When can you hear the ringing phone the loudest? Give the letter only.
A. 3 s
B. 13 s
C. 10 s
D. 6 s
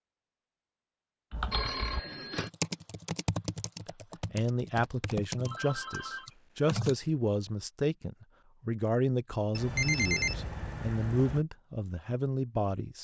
C.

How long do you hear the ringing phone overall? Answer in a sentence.
The ringing phone can be heard for 4 seconds in total.